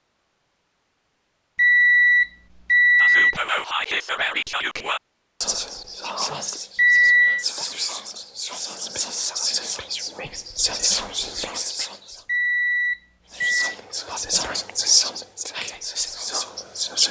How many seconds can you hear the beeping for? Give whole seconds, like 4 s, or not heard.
4 s.